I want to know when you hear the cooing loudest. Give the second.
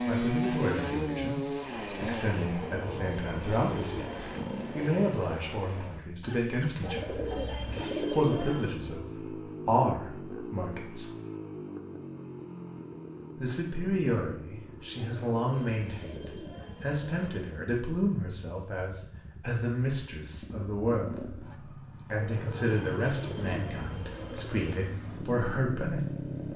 8 s.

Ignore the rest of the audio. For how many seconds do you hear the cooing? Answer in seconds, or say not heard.
10 s.